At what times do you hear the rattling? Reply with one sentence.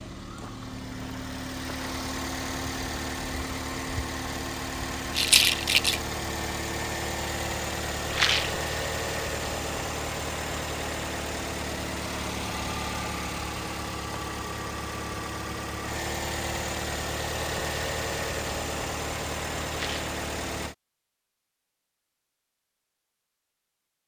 The rattling can be heard from 5.2 to 6.0 s, from 8.1 to 8.6 s and from 19.7 to 20.1 s.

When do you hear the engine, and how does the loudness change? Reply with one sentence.
The engine can be heard from 0.0 to 20.8 s, at a steady volume.